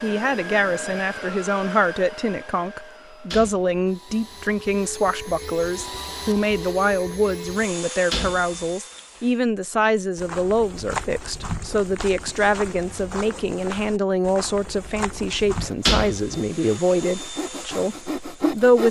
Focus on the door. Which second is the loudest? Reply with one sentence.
The loudest moment of the door is at 16 seconds.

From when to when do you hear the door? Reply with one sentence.
The door can be heard from 3.0 to 3.8 s, from 8.1 to 9.2 s and from 15.6 to 16.7 s.